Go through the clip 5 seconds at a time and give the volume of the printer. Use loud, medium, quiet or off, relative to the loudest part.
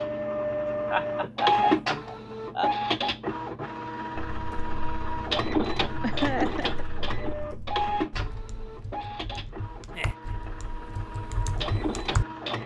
loud, loud, medium.